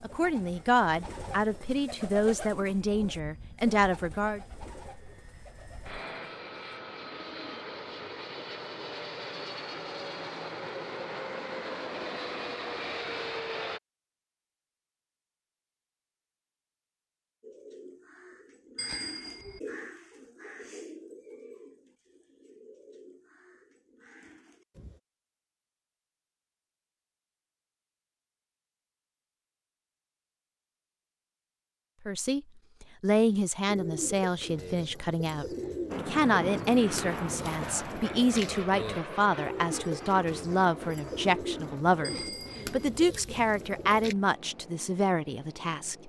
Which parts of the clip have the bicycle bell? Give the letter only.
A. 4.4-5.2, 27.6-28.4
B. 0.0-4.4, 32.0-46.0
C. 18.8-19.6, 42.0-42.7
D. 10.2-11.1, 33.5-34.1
C.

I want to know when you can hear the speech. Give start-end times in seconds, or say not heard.
0.0-4.4, 32.0-46.0.